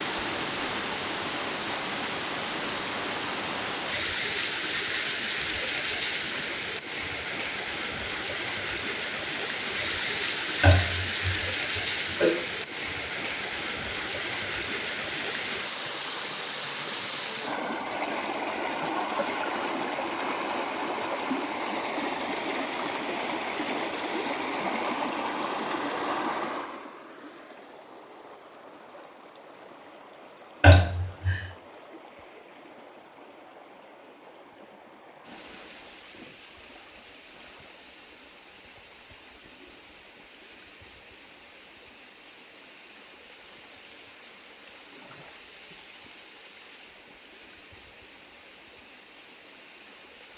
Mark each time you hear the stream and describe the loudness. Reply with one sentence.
You can hear the stream from 0.0 to 50.3 s, getting quieter.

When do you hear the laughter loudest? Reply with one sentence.
The loudest moment of the laughter is at 31 seconds.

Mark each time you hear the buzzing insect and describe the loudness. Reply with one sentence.
The buzzing insect can't be heard in this clip.